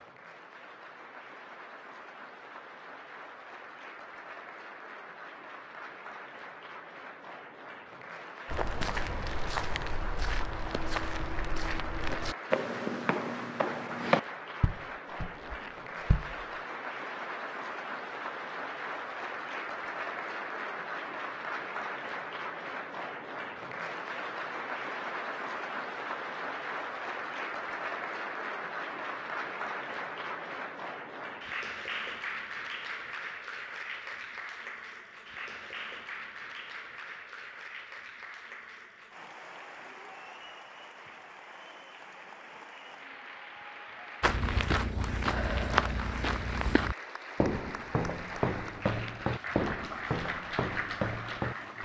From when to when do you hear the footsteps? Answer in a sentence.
You can hear the footsteps from 8.4 to 16.4 s and from 44.2 to 51.7 s.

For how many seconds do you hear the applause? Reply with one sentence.
You can hear the applause for 52 seconds altogether.